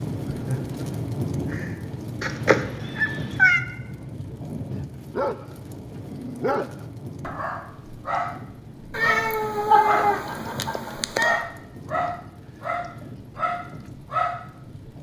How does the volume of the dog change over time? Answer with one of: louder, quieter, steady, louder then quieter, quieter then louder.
steady.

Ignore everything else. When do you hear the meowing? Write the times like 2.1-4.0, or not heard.
2.2-3.6, 8.9-11.4.